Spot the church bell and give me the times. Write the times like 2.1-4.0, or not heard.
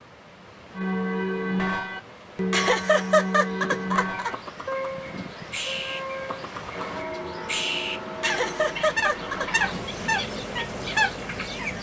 0.8-9.5.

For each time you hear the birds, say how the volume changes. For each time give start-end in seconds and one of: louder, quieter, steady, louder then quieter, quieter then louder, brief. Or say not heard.
3.5-11.7 louder.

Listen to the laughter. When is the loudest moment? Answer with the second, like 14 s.
3 s.